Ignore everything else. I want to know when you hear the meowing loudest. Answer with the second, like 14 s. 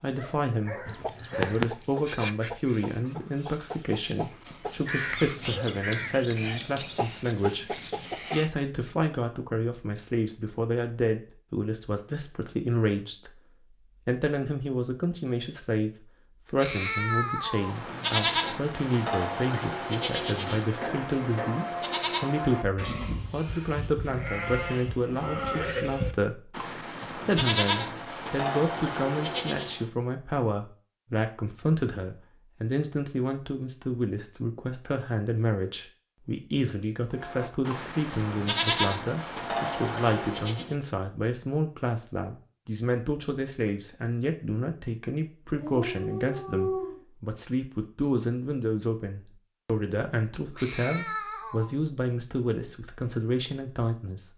17 s.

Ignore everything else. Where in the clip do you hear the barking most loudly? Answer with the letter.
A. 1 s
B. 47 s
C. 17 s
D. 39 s
B.